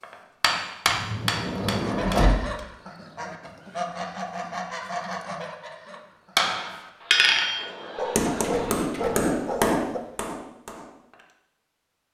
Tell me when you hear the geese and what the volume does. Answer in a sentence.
The geese can be heard from 1.7 to 8.8 s, getting quieter then louder.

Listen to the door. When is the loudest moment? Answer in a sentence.
The loudest moment of the door is at 2 seconds.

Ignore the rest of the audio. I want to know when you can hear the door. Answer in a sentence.
You can hear the door from 0.8 to 2.5 s and from 7.5 to 9.3 s.